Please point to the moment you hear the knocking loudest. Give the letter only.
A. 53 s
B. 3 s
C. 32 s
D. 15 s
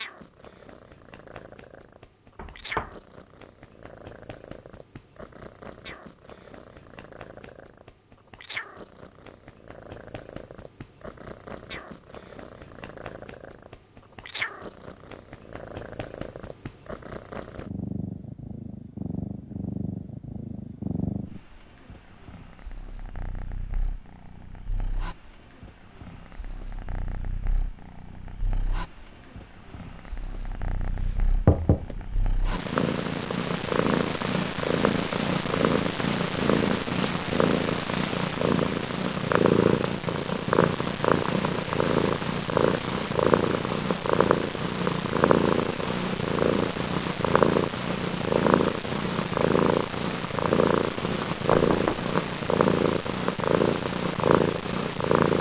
C.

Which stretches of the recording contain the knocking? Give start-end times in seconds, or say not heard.
2.4-3.0, 30.9-32.1, 51.5-52.0.